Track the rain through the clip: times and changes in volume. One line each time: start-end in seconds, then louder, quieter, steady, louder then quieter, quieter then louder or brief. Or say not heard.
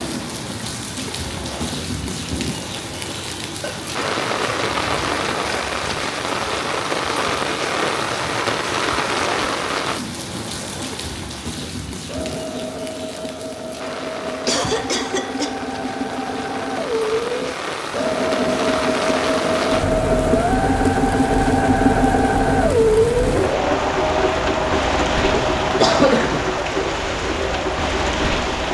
0.0-28.6 quieter then louder.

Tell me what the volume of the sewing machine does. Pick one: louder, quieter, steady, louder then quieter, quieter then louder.
louder.